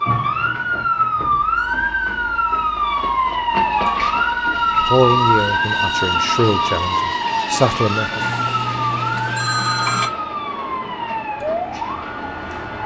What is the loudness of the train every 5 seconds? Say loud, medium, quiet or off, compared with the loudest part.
loud, loud, medium.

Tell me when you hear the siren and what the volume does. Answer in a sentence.
The siren can be heard from 0.0 to 12.8 s, getting quieter.